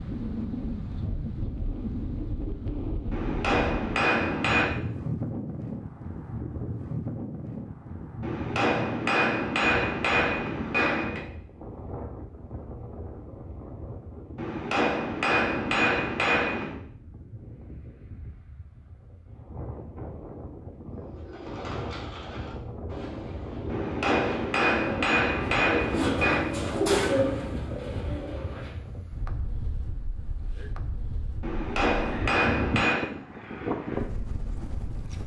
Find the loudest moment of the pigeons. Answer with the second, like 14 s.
27 s.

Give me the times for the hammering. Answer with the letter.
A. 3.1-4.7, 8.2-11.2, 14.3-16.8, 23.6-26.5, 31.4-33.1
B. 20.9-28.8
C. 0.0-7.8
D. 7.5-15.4
A.